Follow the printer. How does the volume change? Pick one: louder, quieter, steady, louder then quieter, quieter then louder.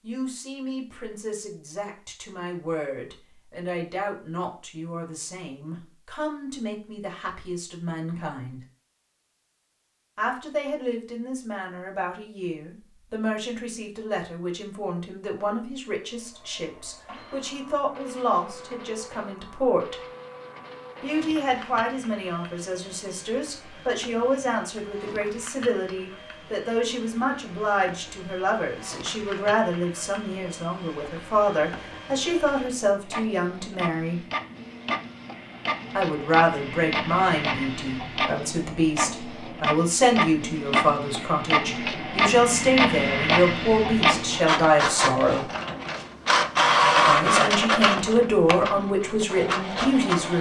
louder.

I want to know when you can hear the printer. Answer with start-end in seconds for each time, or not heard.
16.0-50.3.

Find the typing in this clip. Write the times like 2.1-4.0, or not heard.
not heard.